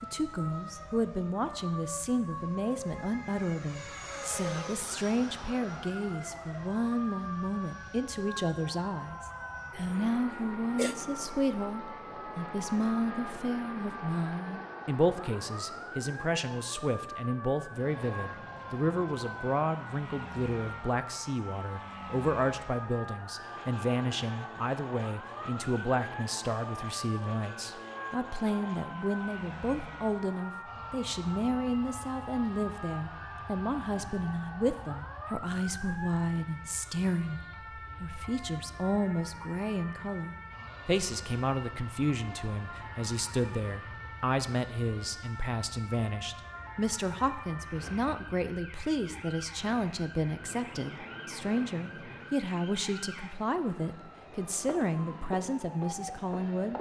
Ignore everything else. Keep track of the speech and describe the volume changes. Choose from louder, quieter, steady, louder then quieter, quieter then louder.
steady.